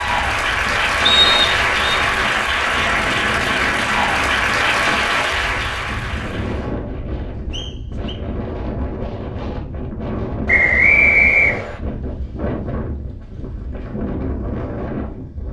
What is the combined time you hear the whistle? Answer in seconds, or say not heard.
3 s.